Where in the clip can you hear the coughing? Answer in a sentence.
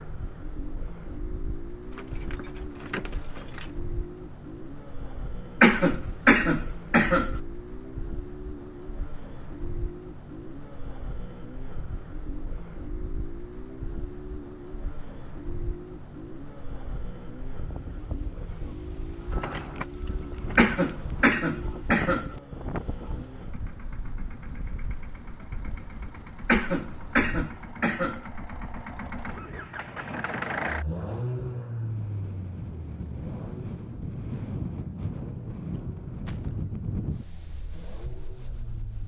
The coughing can be heard from 5.6 to 7.3 s, from 20.6 to 22.3 s and from 26.4 to 28.2 s.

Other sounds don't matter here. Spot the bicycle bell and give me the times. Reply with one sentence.
You can't hear the bicycle bell here.